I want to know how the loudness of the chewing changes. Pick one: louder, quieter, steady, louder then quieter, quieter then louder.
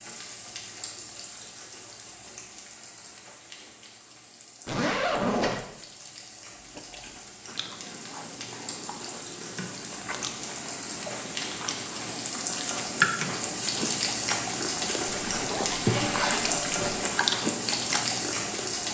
louder.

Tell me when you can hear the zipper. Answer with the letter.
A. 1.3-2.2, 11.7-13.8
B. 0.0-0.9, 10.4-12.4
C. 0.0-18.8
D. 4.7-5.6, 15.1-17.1
D.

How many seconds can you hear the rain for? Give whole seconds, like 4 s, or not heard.
19 s.